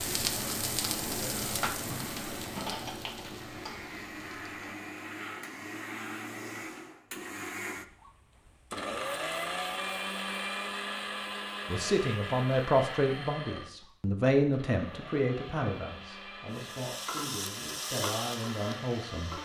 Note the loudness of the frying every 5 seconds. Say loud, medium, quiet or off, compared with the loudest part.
loud, off, off, loud.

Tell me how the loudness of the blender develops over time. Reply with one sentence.
The loudness of the blender goes up, then down.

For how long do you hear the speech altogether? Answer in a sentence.
The speech can be heard for 8 seconds in total.